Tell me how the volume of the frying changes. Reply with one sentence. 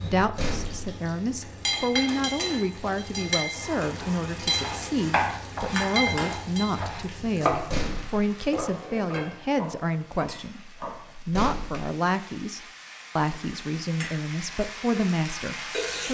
The volume of the frying goes down, then up.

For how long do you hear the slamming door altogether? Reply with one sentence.
The slamming door can be heard for 2 seconds in total.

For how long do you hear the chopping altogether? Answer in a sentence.
The chopping can be heard for 7 seconds in total.